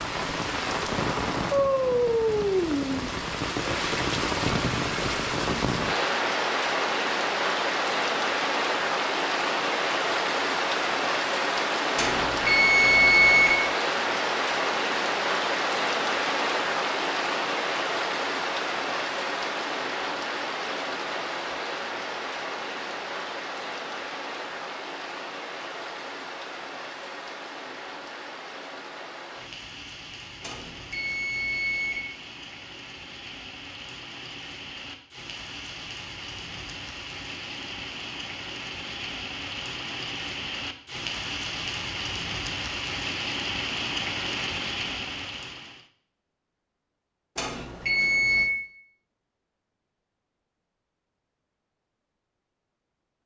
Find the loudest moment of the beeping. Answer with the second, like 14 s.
13 s.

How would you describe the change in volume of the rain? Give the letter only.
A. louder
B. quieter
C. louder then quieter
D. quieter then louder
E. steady
D.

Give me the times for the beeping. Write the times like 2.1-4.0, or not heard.
11.9-13.6, 30.4-32.0, 47.4-48.5.